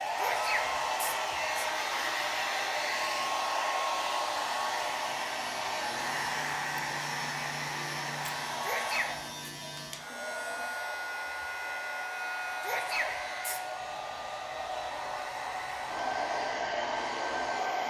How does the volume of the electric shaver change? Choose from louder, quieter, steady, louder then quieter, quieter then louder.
quieter.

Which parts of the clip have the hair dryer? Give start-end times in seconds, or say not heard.
0.0-17.8.